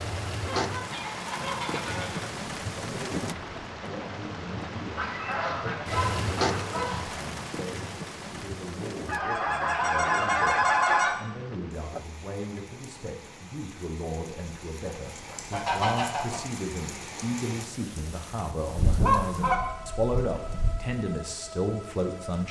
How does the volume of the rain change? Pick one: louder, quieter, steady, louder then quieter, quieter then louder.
quieter.